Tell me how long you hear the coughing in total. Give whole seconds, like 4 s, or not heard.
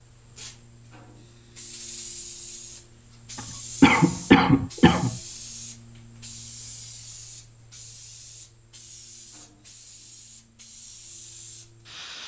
2 s.